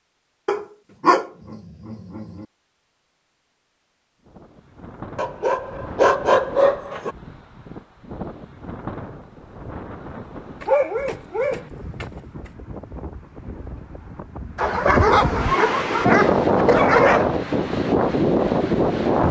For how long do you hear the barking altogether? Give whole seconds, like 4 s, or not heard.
8 s.